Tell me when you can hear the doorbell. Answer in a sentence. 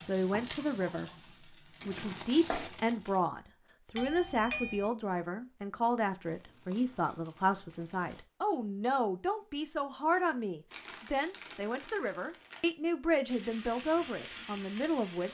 You can hear the doorbell from 4.0 to 4.9 s.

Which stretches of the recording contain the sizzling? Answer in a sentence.
You can hear the sizzling from 0.0 to 2.7 s and from 13.2 to 15.2 s.